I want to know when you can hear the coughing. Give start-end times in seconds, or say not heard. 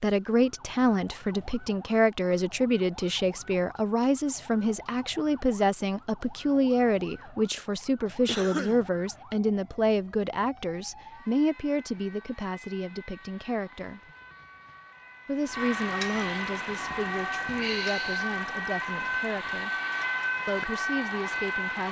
8.2-8.8.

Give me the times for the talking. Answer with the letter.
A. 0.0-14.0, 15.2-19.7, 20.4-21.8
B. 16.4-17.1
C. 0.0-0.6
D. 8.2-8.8
A.